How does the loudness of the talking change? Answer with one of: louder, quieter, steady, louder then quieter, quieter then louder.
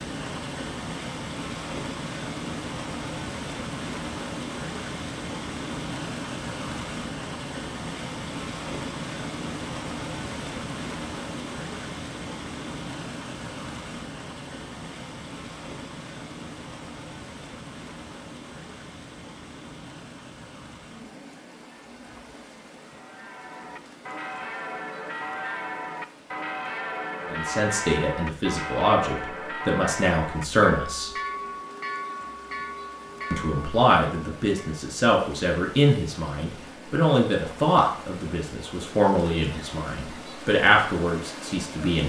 steady.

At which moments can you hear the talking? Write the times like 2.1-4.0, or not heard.
27.3-31.1, 33.3-42.0.